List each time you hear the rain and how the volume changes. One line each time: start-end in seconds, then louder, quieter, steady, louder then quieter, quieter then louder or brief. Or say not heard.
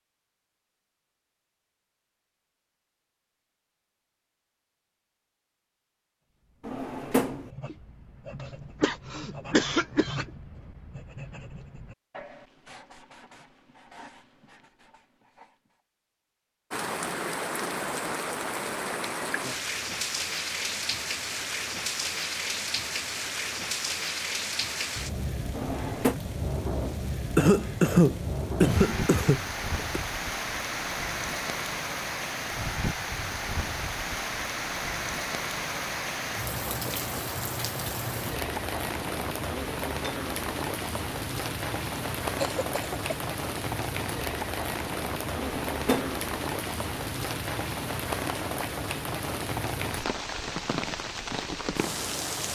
16.7-52.5 steady.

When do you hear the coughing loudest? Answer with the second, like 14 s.
28 s.